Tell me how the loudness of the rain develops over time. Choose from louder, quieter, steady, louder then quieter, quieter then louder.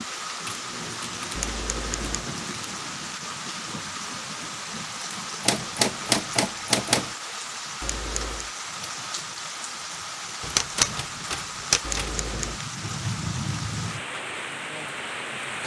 steady.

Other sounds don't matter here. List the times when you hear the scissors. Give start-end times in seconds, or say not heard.
1.4-2.2, 7.8-8.5, 11.8-12.6.